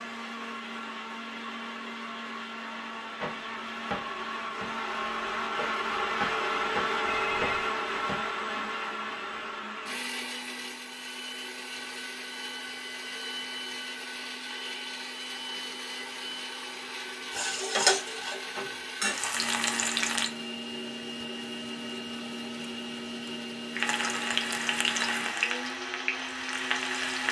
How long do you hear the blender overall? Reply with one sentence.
You can hear the blender for 27 seconds altogether.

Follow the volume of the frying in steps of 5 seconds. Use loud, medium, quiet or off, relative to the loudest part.
off, off, off, loud, loud, loud.